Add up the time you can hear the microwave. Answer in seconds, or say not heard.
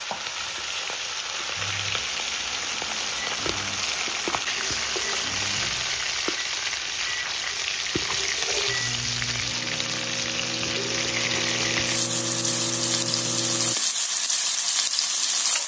12 s.